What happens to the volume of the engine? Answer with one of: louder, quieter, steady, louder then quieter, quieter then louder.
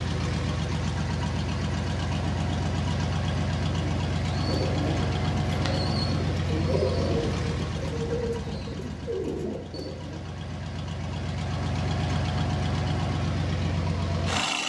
quieter then louder.